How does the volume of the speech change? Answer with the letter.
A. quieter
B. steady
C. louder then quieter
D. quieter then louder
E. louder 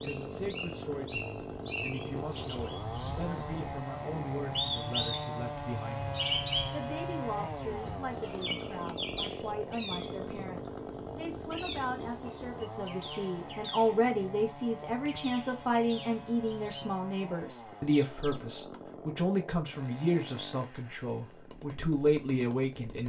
E.